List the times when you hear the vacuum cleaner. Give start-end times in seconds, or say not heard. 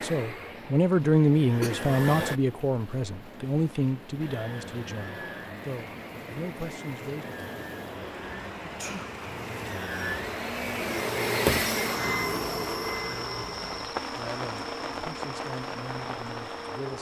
0.0-2.4, 4.2-16.9.